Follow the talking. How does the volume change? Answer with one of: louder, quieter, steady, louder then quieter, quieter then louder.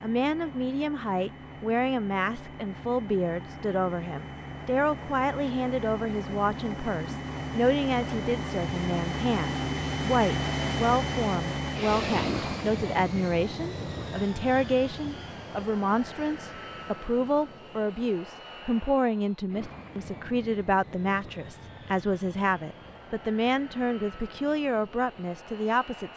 steady.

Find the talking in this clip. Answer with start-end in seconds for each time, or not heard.
0.0-26.1.